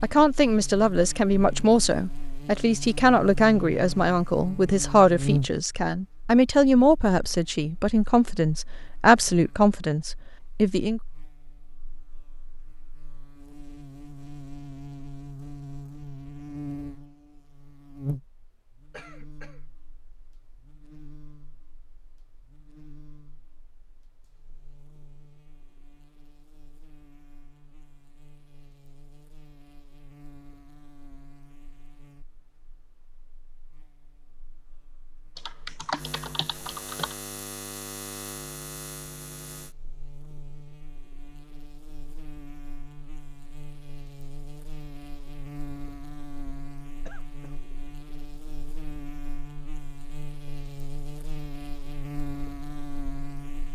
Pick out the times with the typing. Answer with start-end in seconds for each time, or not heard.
35.4-37.1.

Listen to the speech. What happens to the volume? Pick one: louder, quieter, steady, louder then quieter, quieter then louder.
steady.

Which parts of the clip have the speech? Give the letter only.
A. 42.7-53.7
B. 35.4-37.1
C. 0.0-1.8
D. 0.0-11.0
D.